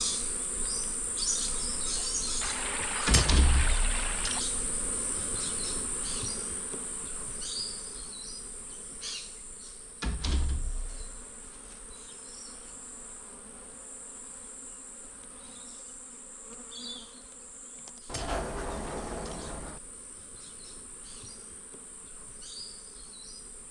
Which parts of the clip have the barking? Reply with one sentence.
You can't hear the barking here.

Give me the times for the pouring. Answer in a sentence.
You can hear the pouring from 2.4 to 4.4 s.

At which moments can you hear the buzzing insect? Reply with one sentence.
You can hear the buzzing insect from 0.0 to 23.6 s.